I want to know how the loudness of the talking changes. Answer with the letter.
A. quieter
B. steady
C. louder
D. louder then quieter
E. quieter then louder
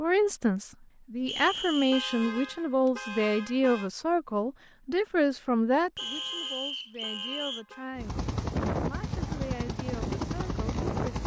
A.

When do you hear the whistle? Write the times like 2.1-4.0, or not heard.
1.2-2.2, 6.0-7.7.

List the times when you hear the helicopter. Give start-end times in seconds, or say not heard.
8.0-11.2.